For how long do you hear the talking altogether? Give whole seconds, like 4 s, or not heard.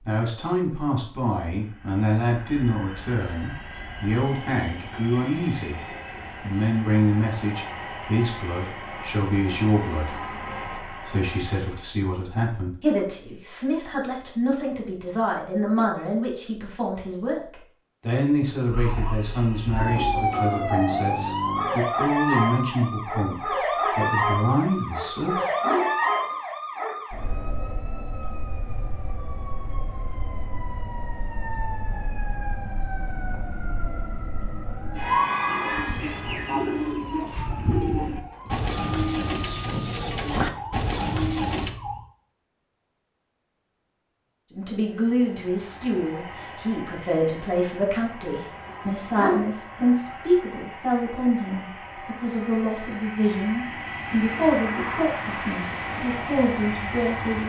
38 s.